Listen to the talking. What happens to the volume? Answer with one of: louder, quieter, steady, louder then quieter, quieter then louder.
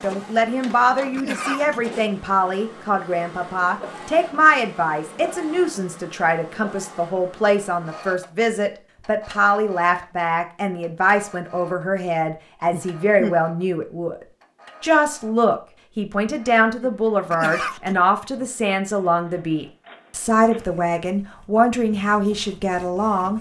steady.